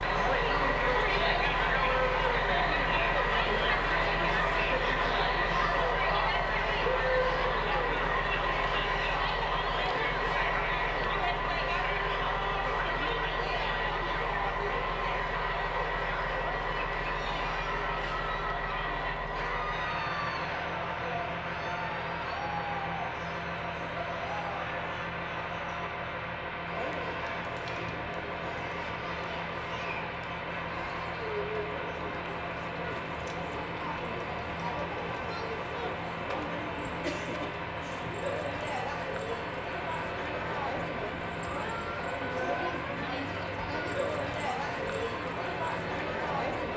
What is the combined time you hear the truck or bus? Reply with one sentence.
You can hear the truck or bus for 47 seconds altogether.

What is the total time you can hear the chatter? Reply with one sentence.
The chatter can be heard for 47 seconds in total.